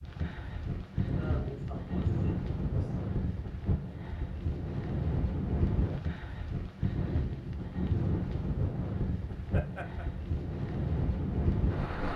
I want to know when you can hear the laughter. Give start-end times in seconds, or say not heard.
1.1-3.1, 9.5-10.1.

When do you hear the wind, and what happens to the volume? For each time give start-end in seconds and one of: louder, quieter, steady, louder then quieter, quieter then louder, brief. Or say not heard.
0.0-12.1 steady.